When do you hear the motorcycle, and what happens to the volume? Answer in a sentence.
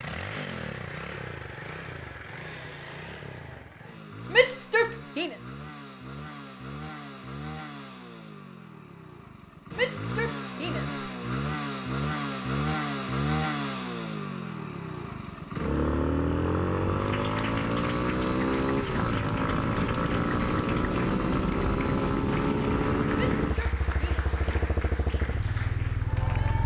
The motorcycle can be heard from 0.0 to 26.6 s, getting louder.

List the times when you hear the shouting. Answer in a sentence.
You can hear the shouting from 4.3 to 5.3 s, from 9.8 to 11.1 s and from 23.1 to 24.2 s.